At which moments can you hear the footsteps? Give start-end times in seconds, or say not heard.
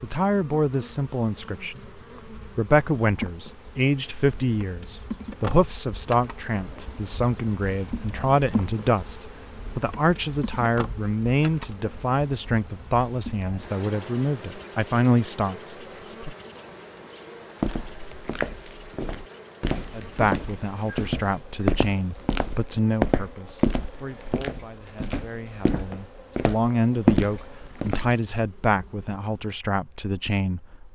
17.6-28.1.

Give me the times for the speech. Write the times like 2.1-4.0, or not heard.
0.0-16.4, 19.9-30.8.